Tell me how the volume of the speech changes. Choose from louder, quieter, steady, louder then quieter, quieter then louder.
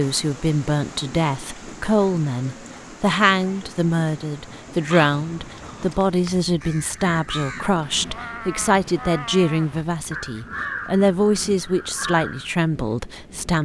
steady.